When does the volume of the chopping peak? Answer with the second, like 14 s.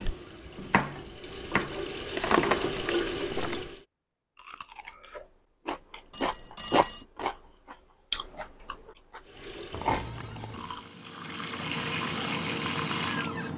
1 s.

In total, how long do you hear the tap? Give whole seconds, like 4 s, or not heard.
8 s.